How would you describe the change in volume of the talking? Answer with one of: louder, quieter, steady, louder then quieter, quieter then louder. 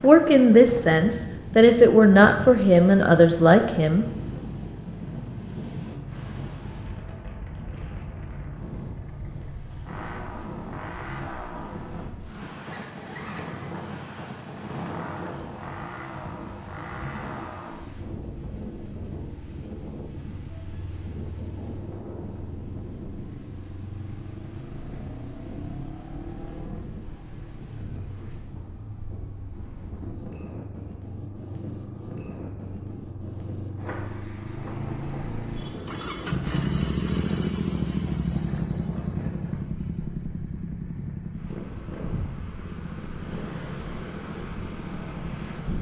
steady.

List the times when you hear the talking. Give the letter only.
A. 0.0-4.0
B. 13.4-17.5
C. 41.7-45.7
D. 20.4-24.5
A.